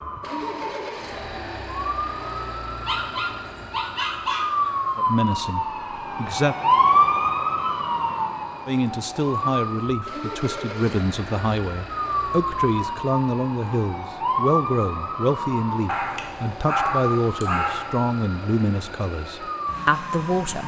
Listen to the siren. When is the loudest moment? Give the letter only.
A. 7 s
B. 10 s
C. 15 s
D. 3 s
A.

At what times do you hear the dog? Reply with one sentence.
The dog can be heard from 2.9 to 5.0 s and from 15.8 to 17.9 s.